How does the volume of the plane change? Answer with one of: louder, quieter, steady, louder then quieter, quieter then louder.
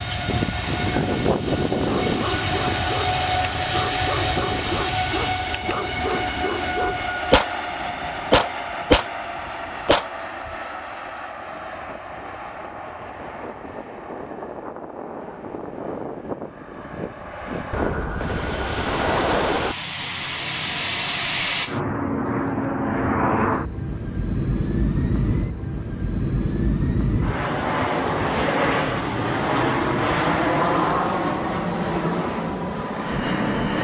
quieter then louder.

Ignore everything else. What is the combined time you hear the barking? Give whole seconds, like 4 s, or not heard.
5 s.